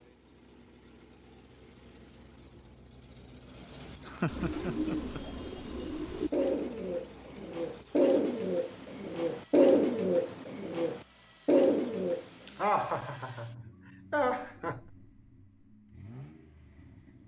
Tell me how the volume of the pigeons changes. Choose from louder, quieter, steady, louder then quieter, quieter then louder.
louder.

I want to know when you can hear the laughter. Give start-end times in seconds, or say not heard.
4.0-5.2, 12.4-14.8.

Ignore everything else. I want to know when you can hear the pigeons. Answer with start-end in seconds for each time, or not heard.
3.5-12.3.